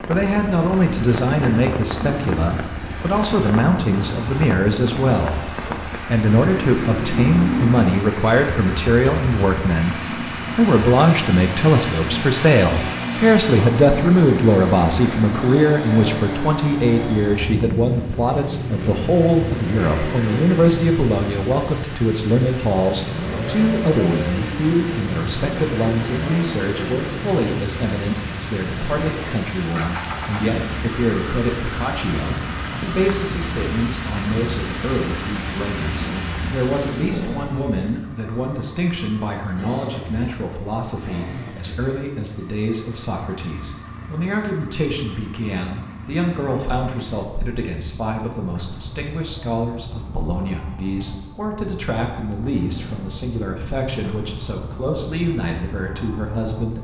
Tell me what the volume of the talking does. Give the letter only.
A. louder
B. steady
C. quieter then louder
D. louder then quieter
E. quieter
E.